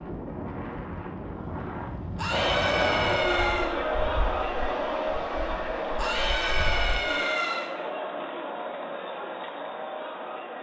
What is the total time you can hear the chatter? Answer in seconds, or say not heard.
8 s.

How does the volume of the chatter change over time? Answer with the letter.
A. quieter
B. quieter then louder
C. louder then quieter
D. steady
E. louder
A.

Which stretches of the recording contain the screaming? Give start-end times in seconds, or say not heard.
2.1-3.8, 6.0-7.7.